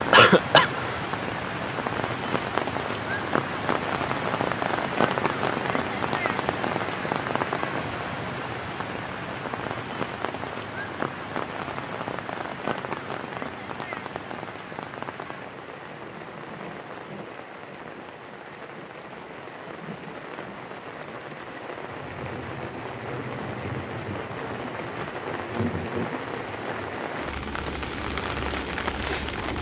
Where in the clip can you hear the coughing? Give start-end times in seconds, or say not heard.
0.1-1.1.